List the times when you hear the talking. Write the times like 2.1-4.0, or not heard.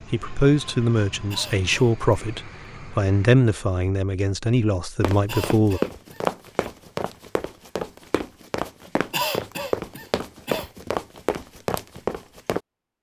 0.1-5.8.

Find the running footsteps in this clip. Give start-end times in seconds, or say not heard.
5.0-12.6.